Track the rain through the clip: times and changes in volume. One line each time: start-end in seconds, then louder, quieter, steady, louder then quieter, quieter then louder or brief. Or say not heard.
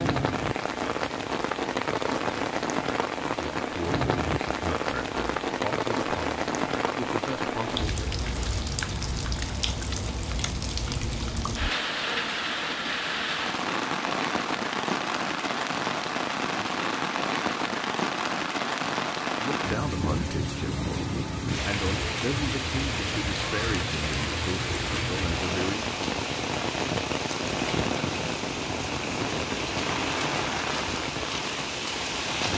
0.0-32.5 steady.